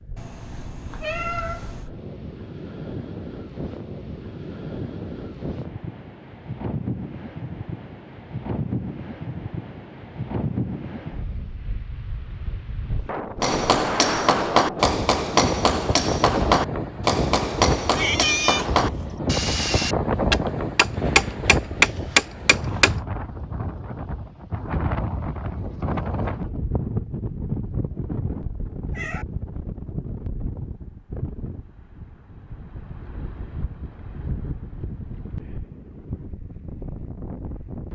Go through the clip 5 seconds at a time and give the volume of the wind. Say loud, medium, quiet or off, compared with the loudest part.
medium, medium, loud, loud, loud, loud, medium, medium.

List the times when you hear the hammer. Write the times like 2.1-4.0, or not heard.
13.4-22.9.